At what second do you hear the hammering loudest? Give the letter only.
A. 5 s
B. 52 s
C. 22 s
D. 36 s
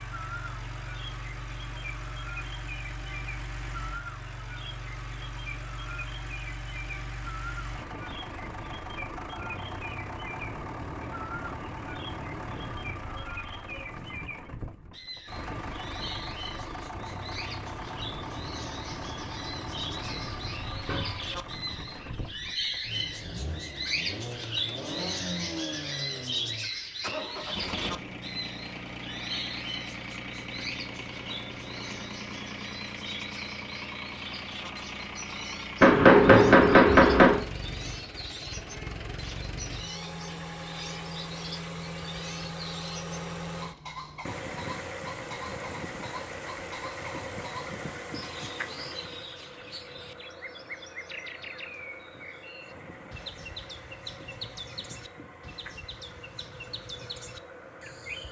D.